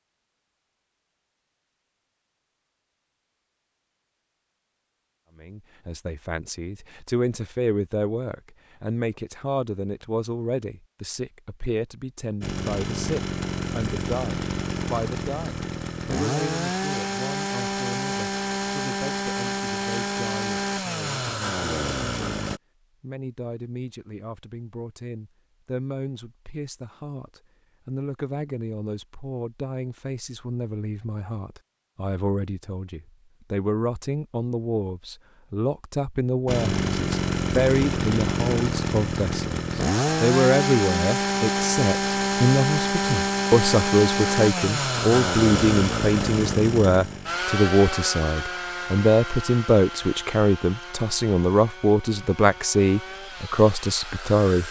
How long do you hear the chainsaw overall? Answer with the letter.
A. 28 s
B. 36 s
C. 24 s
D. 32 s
A.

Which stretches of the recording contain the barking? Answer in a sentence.
You can't hear the barking here.